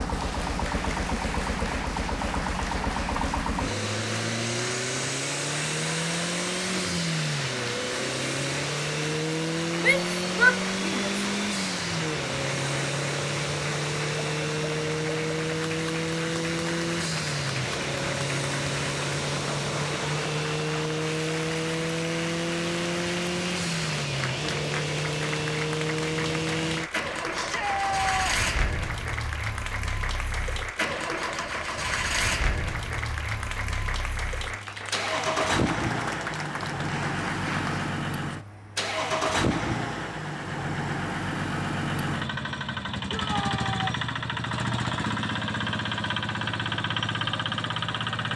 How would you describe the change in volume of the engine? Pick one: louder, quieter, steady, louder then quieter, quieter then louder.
steady.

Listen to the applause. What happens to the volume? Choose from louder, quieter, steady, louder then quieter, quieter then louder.
steady.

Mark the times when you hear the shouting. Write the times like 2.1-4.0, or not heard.
9.8-11.1, 27.3-28.4, 43.1-44.0.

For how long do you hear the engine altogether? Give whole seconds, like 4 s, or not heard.
48 s.